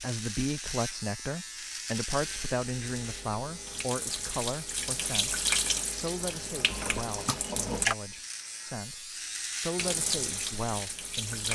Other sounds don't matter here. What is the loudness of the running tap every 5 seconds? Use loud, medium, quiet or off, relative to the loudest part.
medium, loud, loud.